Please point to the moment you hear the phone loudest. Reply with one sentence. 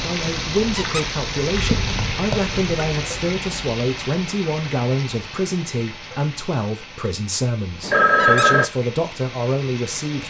The loudest moment of the phone is at 8 seconds.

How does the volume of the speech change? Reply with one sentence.
The loudness of the speech stays about the same.